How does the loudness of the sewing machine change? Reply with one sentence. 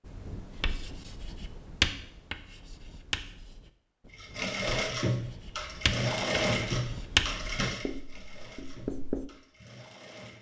The volume of the sewing machine goes down.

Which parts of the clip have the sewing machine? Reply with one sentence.
The sewing machine can be heard from 4.2 to 10.3 s.